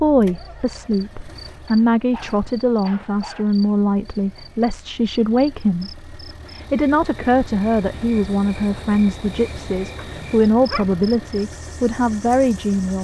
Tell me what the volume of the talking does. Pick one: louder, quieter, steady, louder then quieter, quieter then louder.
steady.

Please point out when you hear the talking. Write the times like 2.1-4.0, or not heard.
0.0-12.9.